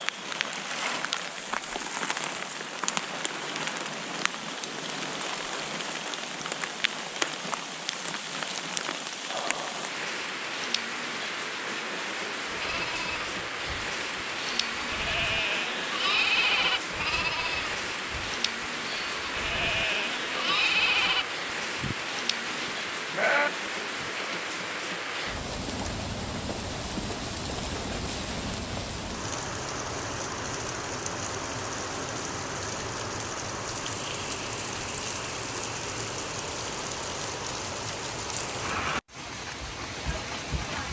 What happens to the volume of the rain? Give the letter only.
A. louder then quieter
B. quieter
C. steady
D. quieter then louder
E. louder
C.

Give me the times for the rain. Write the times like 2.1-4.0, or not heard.
0.0-40.8.